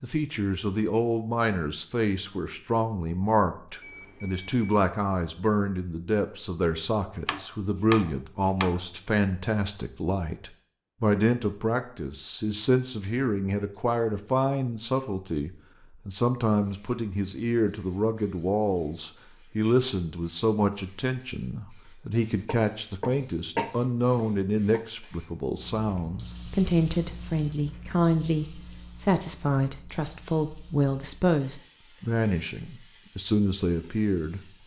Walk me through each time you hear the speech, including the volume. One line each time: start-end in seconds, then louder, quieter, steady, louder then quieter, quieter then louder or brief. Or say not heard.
0.0-34.4 steady.